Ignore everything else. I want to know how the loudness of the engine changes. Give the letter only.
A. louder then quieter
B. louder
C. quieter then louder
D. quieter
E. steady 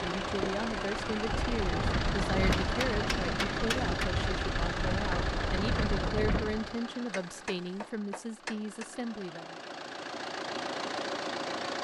C.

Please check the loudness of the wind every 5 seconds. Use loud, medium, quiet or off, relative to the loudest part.
loud, loud, off.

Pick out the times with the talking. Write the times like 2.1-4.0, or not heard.
0.0-9.6.